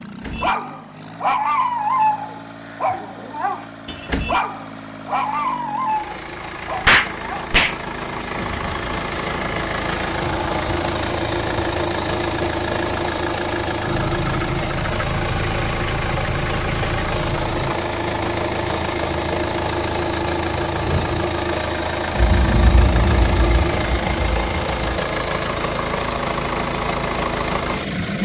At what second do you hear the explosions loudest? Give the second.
7 s.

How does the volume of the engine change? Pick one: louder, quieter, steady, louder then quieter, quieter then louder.
louder.